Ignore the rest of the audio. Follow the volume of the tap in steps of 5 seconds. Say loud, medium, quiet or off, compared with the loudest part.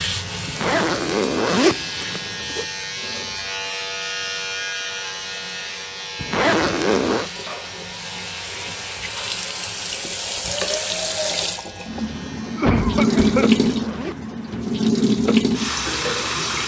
quiet, quiet, loud, loud.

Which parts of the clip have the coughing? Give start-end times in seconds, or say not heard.
12.6-13.5.